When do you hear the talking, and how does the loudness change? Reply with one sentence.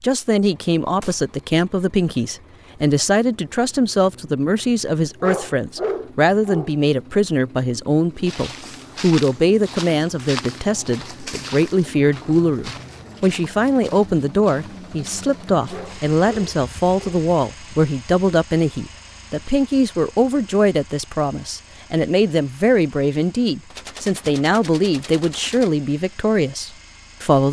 You can hear the talking from 0.0 to 27.4 s, at a steady volume.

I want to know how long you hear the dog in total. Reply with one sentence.
You can hear the dog for 3 seconds altogether.